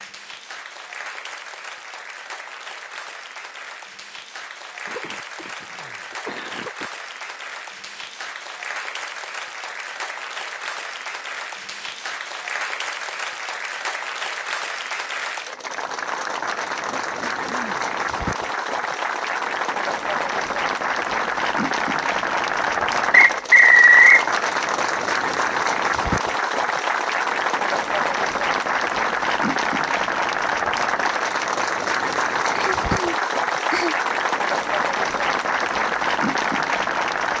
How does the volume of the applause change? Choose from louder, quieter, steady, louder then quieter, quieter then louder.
louder.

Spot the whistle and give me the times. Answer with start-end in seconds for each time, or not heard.
23.1-24.2.